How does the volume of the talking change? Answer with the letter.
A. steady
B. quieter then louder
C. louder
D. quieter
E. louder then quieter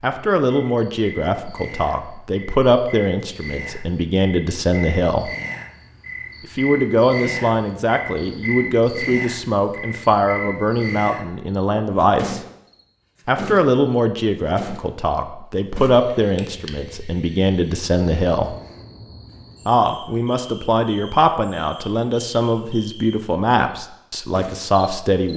A.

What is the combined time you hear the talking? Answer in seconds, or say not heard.
22 s.